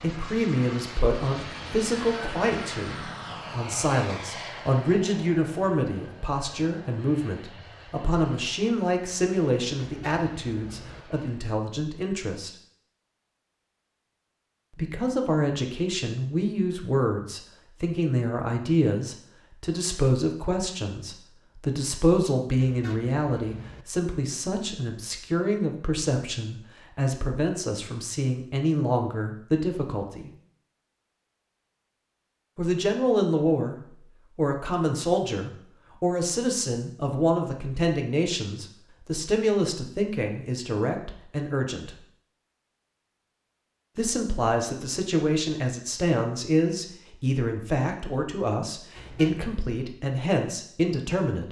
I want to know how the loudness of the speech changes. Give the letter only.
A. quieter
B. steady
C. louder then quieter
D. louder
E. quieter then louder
B.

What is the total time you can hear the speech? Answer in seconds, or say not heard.
45 s.